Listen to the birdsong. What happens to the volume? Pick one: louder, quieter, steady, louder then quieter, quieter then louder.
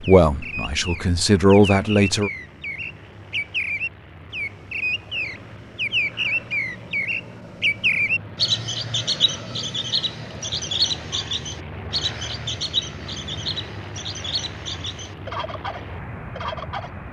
louder then quieter.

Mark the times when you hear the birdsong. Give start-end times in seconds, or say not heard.
0.0-16.9.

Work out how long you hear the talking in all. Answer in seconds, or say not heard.
2 s.